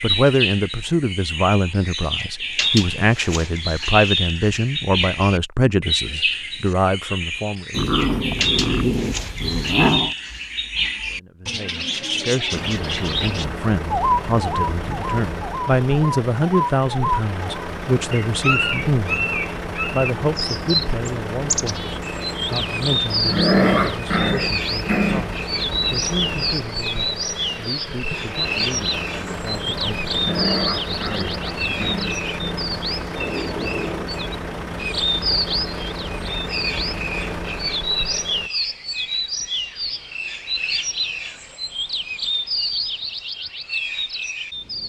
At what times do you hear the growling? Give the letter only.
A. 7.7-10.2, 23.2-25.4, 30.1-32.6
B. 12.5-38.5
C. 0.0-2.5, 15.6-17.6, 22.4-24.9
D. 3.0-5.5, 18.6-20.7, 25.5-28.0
A.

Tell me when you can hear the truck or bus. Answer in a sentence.
The truck or bus can be heard from 12.5 to 38.5 s.